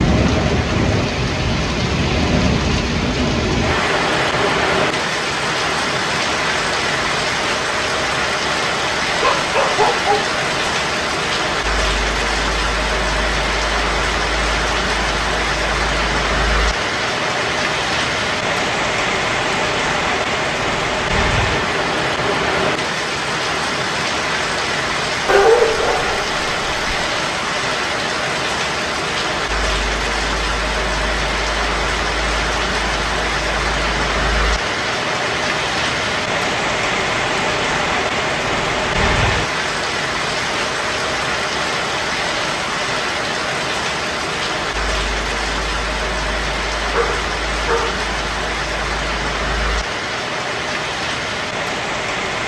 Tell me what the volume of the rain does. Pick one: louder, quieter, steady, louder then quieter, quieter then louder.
steady.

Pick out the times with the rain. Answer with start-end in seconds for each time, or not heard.
0.0-52.4.